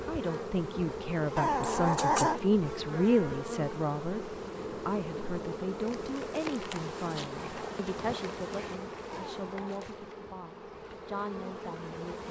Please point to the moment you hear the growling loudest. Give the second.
2 s.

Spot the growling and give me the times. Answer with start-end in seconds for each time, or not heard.
1.4-2.4, 9.1-9.9.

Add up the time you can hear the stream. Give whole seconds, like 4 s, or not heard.
not heard.